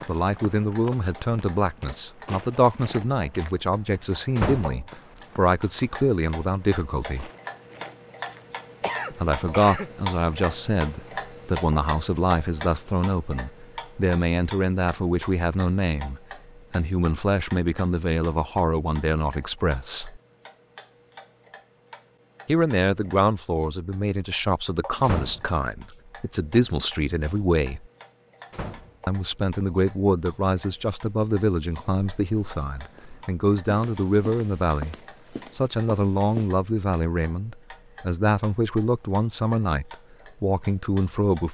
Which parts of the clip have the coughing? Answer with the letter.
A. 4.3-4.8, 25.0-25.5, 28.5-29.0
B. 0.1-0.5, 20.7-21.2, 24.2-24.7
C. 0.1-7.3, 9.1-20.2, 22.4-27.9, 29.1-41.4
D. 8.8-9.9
D.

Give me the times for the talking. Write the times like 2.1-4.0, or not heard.
0.1-7.3, 9.1-20.2, 22.4-27.9, 29.1-41.4.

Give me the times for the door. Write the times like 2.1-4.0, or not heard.
4.3-4.8, 25.0-25.5, 28.5-29.0.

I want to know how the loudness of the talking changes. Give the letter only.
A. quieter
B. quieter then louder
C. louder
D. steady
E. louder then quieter
D.